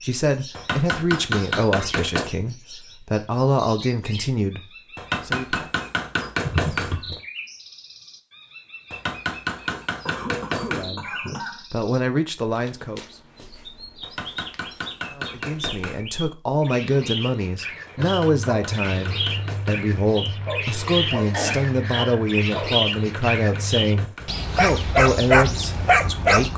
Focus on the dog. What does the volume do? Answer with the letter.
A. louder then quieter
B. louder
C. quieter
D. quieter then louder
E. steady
B.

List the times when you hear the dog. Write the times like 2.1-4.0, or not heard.
18.2-26.4.